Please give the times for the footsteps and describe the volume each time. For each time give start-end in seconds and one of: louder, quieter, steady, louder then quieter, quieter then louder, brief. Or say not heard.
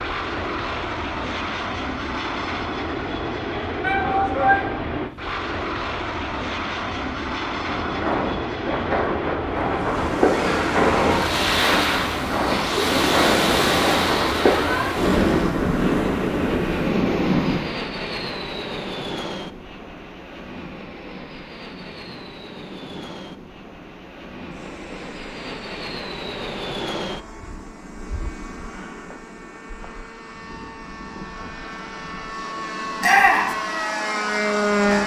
7.7-14.7 steady.